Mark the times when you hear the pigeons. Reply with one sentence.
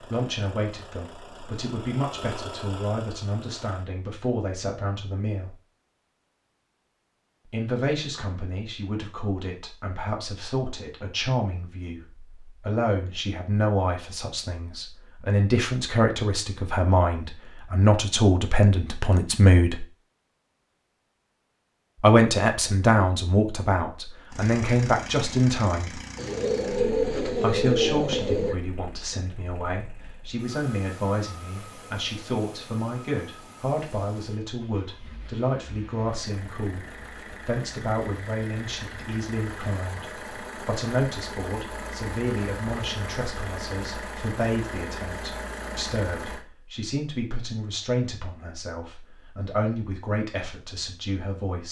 You can hear the pigeons from 26.1 to 28.6 s.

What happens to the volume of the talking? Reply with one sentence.
The volume of the talking goes up, then down.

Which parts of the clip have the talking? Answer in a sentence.
The talking can be heard from 0.0 to 5.5 s, from 7.5 to 19.9 s, from 22.0 to 26.0 s, from 27.4 to 36.9 s and from 37.5 to 51.6 s.